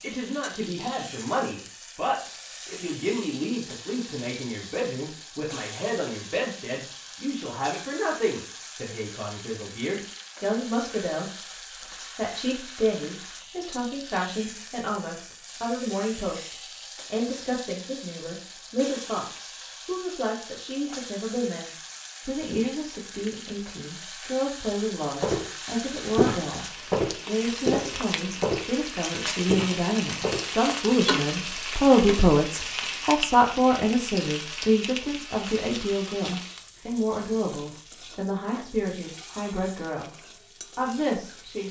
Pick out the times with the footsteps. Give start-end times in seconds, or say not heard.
25.2-30.6.